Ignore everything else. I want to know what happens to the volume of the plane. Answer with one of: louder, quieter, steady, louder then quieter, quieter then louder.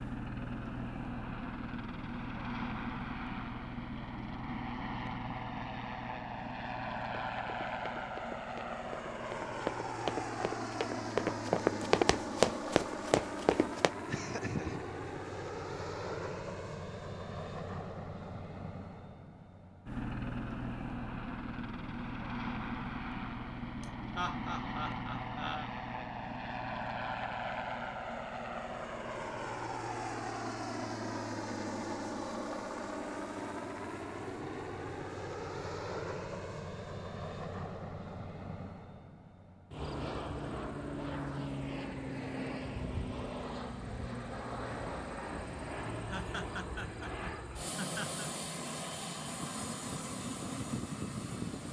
steady.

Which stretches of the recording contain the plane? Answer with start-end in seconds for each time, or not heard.
0.0-51.6.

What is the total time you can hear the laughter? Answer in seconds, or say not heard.
5 s.